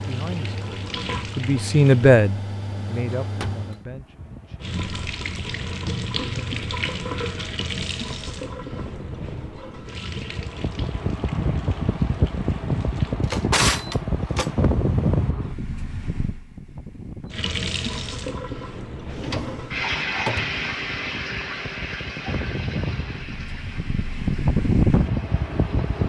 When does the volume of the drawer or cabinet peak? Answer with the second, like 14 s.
14 s.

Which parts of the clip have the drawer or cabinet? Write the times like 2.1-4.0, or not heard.
2.6-3.7, 12.9-14.8, 19.1-20.6.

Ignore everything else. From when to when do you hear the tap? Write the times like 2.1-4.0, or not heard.
0.0-2.1, 4.6-13.2, 17.3-26.0.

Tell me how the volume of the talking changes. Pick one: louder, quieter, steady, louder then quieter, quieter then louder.
louder then quieter.